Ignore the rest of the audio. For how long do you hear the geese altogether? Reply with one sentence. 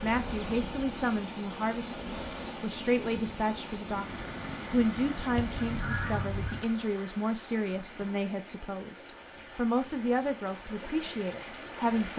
The geese can be heard for 2 seconds in total.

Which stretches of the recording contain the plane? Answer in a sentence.
The plane can be heard from 0.0 to 2.8 s.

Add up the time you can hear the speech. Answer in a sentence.
You can hear the speech for 12 seconds altogether.